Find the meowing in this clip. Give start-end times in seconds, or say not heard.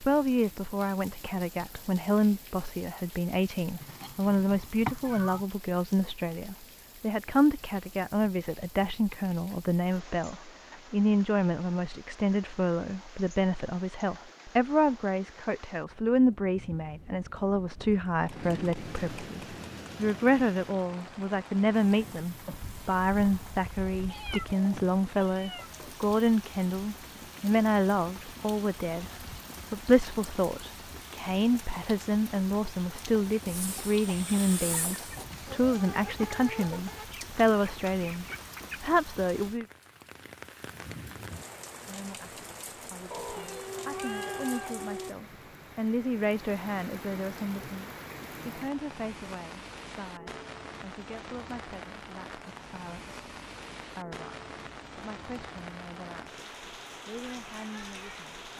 3.8-5.5, 24.1-25.8, 43.1-45.1.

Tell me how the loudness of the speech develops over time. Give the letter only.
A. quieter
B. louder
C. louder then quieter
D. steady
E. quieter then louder
A.